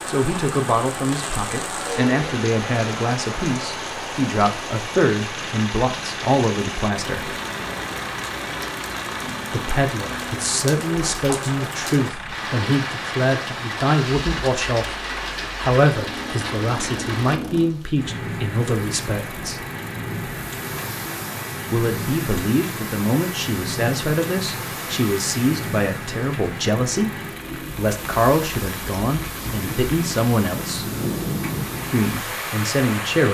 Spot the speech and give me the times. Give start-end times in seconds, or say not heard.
0.1-7.3, 9.5-15.0, 15.6-19.6, 21.7-30.9, 31.9-33.3.